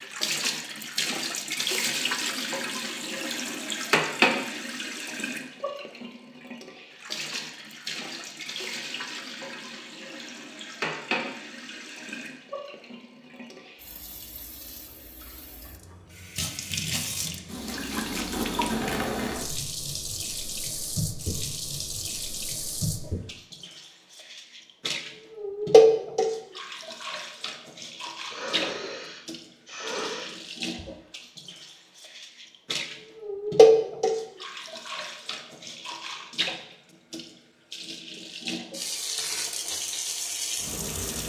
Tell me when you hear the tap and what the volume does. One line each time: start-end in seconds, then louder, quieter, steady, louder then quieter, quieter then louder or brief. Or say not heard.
0.0-41.2 quieter then louder.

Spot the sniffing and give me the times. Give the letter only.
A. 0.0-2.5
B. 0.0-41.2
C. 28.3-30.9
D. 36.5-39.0
C.